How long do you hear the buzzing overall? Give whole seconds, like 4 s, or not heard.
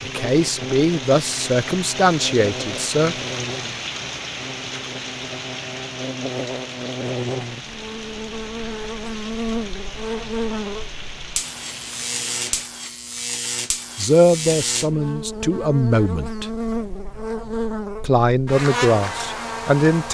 20 s.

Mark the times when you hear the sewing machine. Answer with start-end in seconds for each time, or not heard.
not heard.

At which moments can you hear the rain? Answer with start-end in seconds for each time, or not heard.
0.0-12.7.